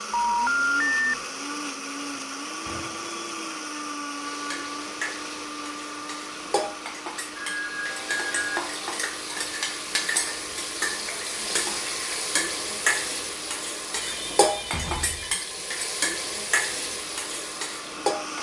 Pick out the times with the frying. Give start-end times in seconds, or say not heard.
4.0-18.3.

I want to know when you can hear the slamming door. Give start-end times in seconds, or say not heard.
2.6-3.1, 14.6-15.3.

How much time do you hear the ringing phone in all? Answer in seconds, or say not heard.
4 s.